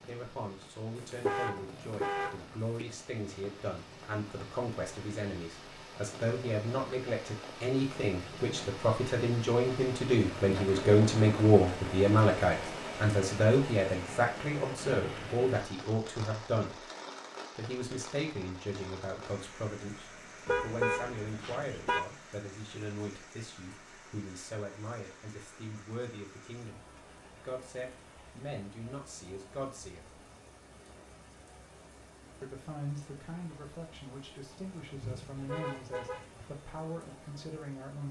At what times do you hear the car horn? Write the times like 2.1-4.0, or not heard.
0.9-2.9, 20.4-22.1, 34.9-36.5.